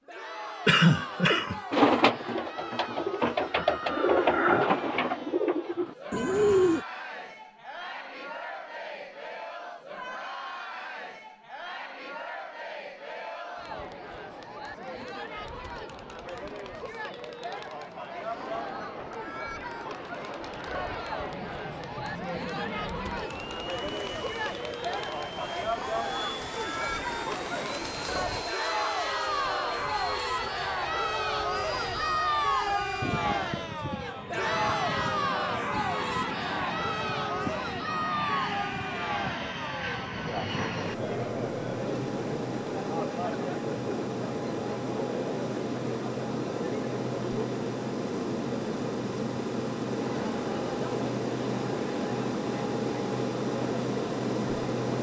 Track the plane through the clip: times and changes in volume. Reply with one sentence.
The plane can be heard from 18.0 to 54.9 s, getting louder.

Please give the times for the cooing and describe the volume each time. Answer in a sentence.
You can hear the cooing from 1.7 to 6.8 s, getting louder then quieter.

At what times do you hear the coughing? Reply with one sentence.
The coughing can be heard from 0.7 to 1.6 s.